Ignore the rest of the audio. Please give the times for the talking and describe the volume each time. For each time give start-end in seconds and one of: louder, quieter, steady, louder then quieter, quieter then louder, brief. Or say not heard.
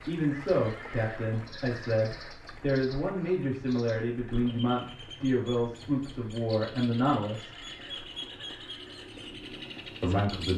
0.1-7.5 steady
10.0-10.5 brief.